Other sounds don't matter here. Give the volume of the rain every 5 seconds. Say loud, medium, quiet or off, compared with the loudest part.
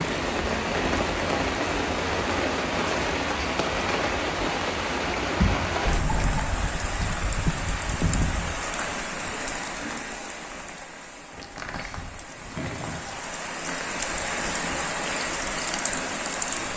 loud, loud, medium, loud.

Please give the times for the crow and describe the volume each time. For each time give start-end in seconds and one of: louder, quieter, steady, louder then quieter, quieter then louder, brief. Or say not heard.
not heard.